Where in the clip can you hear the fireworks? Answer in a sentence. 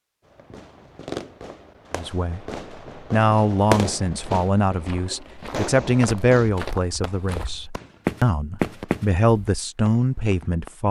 The fireworks can be heard from 0.2 to 10.8 s.